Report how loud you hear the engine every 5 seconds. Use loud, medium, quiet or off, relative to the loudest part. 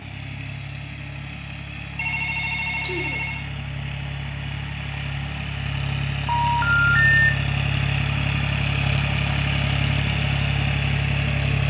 medium, loud, loud.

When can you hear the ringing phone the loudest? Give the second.
7 s.